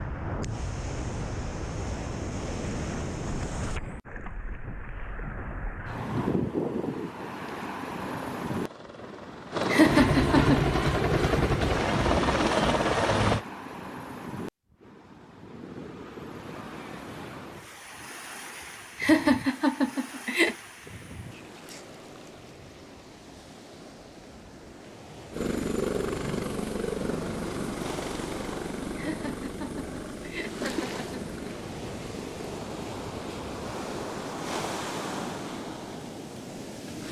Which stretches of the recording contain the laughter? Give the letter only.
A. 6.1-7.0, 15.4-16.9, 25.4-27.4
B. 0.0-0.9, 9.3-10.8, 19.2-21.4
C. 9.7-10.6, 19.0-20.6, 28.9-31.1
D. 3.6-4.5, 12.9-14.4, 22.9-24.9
C.